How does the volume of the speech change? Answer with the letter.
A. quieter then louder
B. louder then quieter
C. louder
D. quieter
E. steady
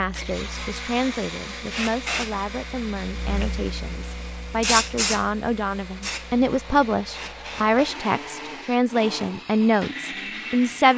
C.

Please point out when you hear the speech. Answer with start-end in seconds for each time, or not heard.
0.0-10.9.